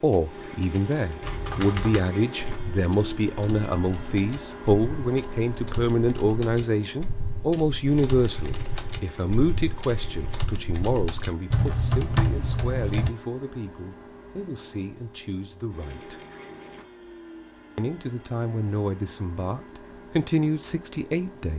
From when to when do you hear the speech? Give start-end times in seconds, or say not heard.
0.0-16.2, 17.8-21.5.